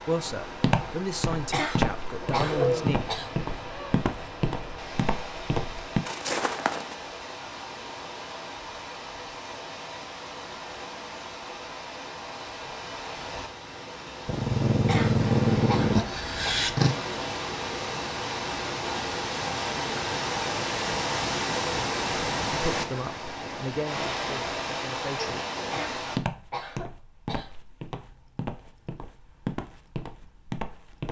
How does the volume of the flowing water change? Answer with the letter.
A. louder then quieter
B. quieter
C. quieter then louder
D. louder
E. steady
D.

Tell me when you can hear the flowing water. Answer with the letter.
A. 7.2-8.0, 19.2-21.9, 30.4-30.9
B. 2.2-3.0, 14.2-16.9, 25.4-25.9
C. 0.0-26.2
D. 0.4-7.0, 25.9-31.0
C.